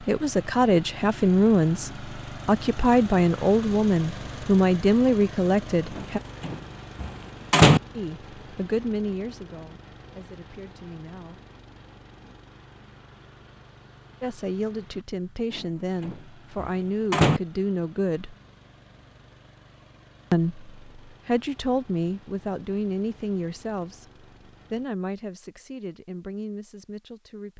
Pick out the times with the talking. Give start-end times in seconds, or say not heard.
0.0-6.2, 7.9-11.4, 14.2-18.4, 20.3-27.5.